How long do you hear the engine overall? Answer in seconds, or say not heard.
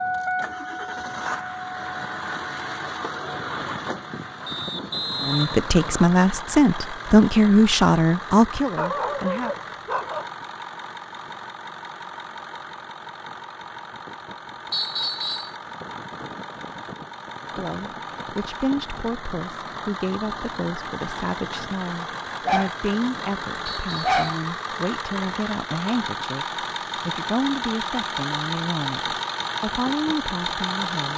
31 s.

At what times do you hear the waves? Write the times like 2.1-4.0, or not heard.
not heard.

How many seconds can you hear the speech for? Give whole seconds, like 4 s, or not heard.
18 s.